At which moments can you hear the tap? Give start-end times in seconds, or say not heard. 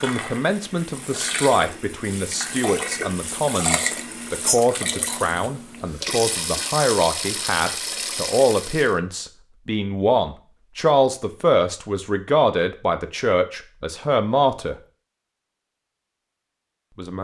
0.0-8.9.